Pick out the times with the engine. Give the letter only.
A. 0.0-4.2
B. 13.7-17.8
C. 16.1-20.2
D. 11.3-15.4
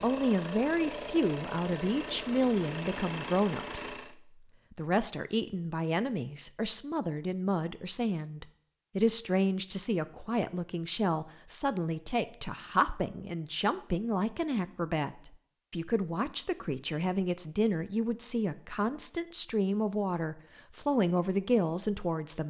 A.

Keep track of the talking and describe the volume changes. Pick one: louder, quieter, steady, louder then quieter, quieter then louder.
steady.